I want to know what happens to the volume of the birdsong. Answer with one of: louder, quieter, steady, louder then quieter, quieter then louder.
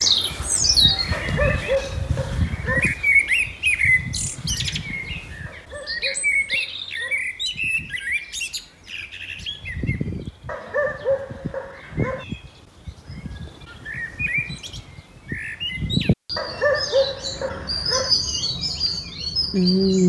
quieter then louder.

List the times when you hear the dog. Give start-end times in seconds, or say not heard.
1.1-2.9, 5.5-7.2, 10.4-12.2, 16.4-18.1.